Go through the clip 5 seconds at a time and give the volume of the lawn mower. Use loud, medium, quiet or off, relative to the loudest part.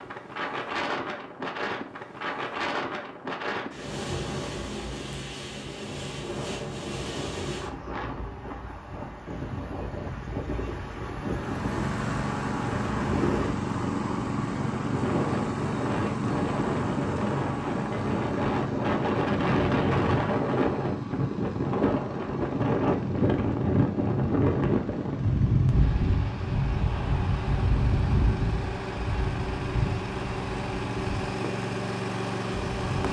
off, off, loud, loud, medium, medium, loud.